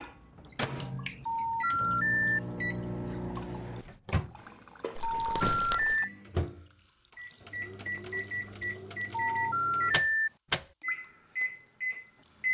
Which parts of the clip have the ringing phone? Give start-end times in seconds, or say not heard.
1.2-2.4, 5.0-5.9, 9.1-10.3.